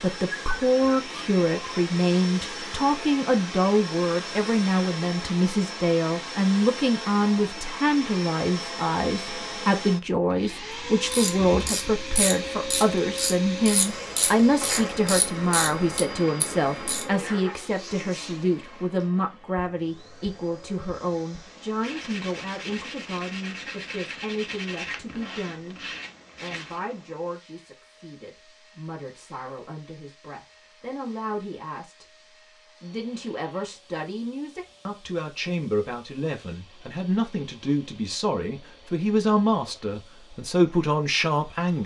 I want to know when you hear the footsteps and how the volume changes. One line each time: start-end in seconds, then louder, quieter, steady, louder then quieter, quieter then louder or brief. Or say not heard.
not heard.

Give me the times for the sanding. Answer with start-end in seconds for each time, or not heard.
21.4-26.9.